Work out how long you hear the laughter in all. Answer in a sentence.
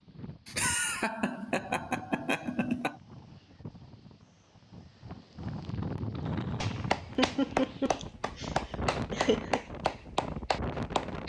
You can hear the laughter for 5 seconds altogether.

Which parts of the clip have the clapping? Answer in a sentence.
You can hear the clapping from 6.6 to 11.2 s.